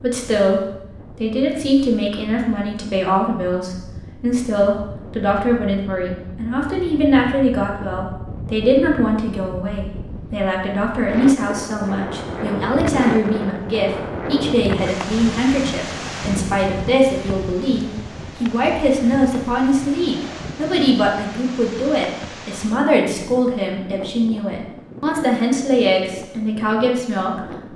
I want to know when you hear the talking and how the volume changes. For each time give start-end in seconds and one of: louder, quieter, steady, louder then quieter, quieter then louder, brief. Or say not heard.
0.0-27.4 steady.